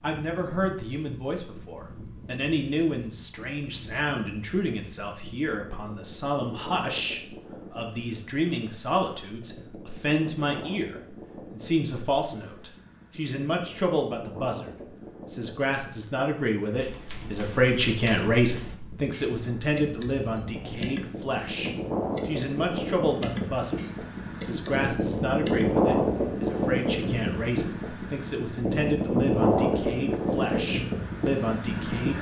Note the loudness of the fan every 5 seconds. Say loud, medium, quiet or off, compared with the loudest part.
quiet, quiet, quiet, quiet, medium, loud, loud.